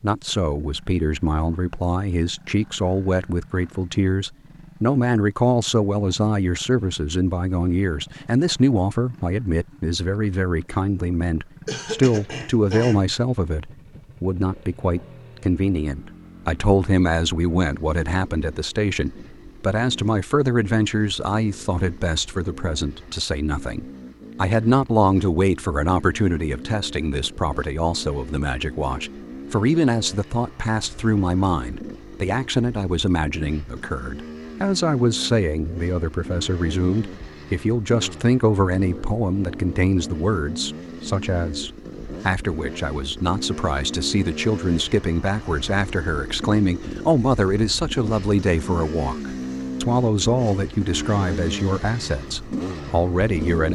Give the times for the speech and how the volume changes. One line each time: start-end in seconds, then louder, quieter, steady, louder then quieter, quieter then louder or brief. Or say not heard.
0.0-53.7 steady.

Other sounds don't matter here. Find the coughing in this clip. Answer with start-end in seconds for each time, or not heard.
11.7-13.1.